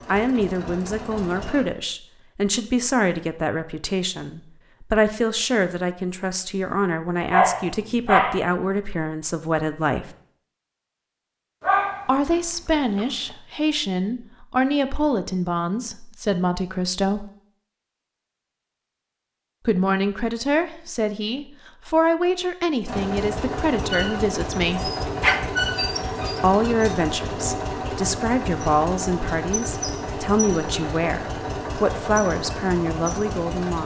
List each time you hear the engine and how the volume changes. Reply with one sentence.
The engine can be heard briefly from 0.0 to 1.6 s; and from 22.9 to 33.8 s, at a steady volume.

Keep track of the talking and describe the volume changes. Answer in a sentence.
The volume of the talking stays about the same.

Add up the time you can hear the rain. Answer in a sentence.
The rain can't be heard in this clip.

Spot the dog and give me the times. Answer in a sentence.
You can hear the dog from 7.3 to 8.4 s, from 11.6 to 13.3 s and from 24.8 to 26.4 s.